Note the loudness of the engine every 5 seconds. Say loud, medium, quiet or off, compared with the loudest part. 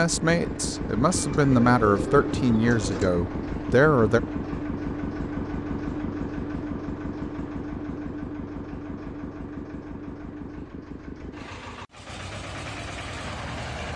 loud, loud, medium.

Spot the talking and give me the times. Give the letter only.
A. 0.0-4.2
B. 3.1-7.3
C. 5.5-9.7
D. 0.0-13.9
A.